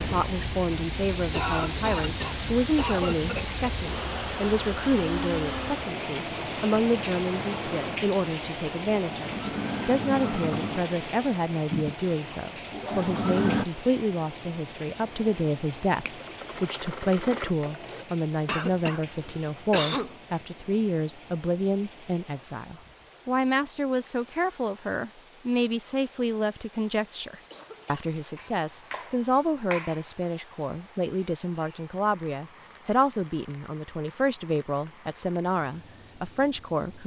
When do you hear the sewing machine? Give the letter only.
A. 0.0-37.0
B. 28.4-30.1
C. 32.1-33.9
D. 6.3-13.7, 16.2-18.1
D.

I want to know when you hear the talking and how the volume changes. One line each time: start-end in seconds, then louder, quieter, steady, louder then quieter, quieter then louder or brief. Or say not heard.
0.0-37.0 steady.